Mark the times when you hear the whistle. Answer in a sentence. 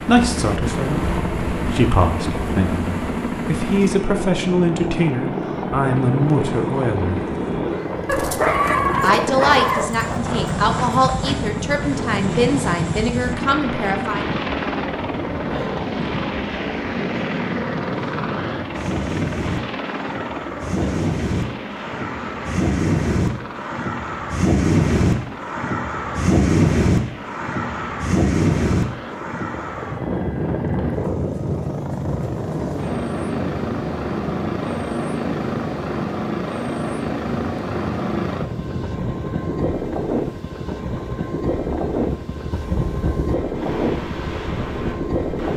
The whistle can't be heard in this clip.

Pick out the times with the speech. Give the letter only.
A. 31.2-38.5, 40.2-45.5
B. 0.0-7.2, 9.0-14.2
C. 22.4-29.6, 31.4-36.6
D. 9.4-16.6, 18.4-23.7
B.